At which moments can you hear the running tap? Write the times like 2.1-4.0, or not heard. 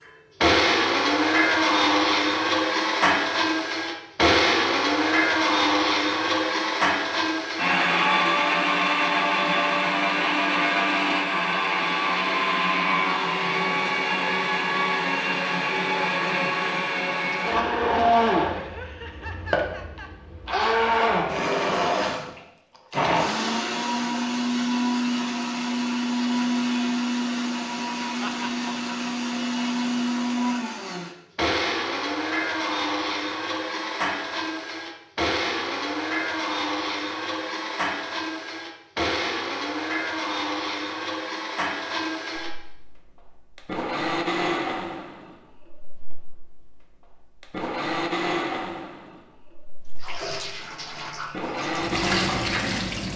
50.0-53.1.